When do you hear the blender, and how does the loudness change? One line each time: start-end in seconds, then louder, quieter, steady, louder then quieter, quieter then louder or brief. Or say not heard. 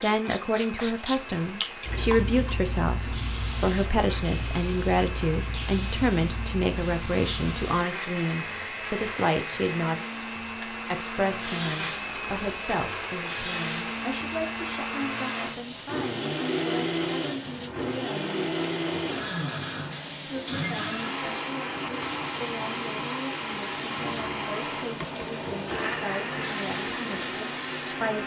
0.0-28.2 louder.